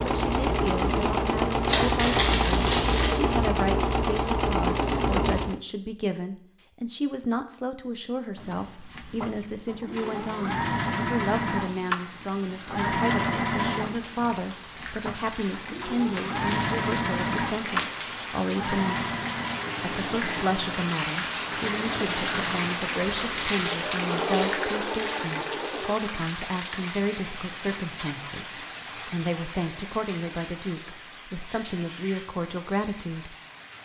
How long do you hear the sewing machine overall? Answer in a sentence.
You can hear the sewing machine for 23 seconds altogether.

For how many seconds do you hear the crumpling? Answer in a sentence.
The crumpling can be heard for 5 seconds in total.